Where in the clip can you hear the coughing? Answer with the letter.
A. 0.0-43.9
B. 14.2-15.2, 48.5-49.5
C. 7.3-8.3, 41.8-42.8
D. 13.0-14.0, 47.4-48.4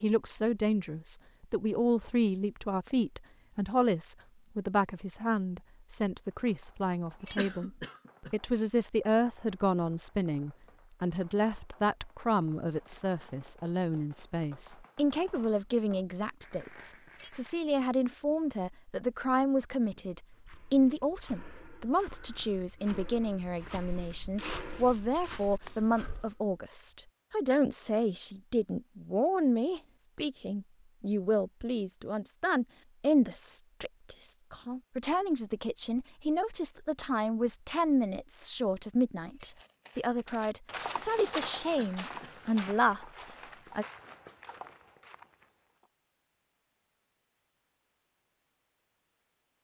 C.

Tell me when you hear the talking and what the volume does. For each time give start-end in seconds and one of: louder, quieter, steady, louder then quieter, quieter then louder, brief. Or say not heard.
0.0-43.9 steady.